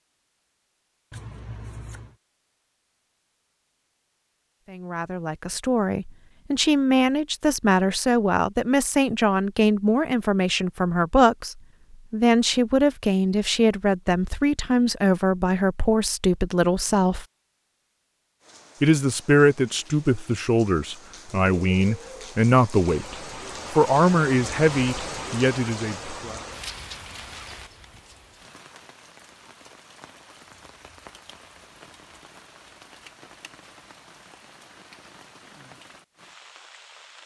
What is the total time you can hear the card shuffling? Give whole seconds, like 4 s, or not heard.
2 s.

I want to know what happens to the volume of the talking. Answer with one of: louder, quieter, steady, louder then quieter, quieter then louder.
steady.